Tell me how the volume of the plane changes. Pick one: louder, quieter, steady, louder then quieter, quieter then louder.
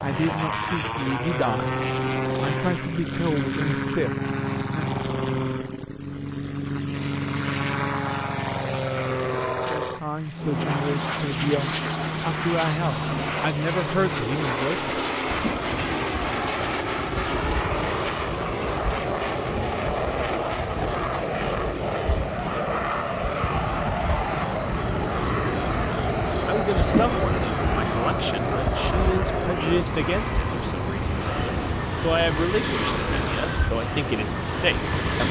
steady.